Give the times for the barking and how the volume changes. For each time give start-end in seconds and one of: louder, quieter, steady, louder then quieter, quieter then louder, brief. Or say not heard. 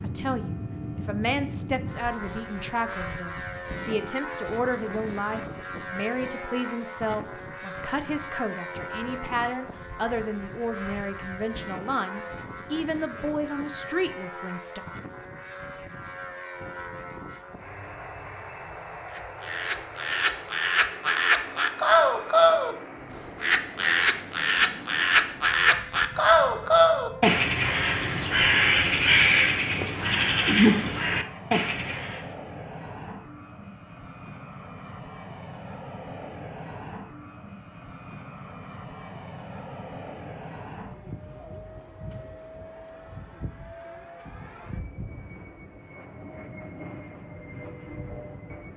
not heard.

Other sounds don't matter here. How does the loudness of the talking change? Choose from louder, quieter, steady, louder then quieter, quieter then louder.
steady.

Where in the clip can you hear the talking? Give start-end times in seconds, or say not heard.
0.0-14.8.